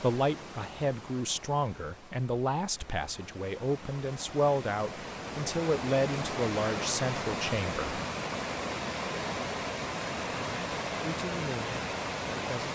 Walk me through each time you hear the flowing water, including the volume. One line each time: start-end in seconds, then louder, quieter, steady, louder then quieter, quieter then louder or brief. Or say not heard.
0.0-12.7 louder.